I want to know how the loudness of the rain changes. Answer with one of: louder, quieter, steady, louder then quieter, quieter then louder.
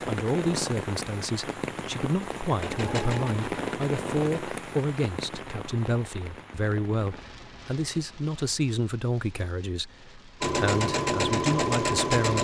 quieter.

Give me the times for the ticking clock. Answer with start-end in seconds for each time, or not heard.
not heard.